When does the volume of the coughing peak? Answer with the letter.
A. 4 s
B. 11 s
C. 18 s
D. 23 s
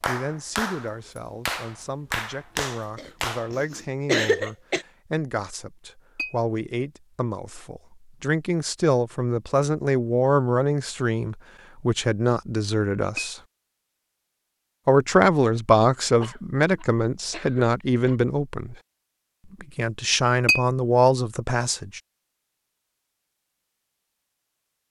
A.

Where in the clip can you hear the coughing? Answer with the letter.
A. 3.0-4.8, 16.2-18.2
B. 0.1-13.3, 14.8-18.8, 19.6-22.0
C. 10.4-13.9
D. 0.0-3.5
A.